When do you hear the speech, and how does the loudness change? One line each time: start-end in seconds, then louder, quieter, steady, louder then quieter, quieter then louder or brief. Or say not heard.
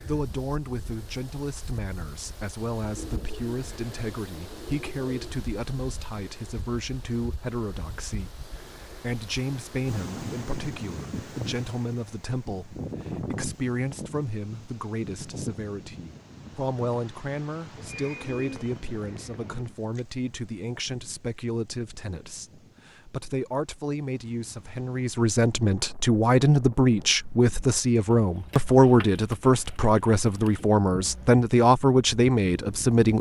0.0-33.1 louder.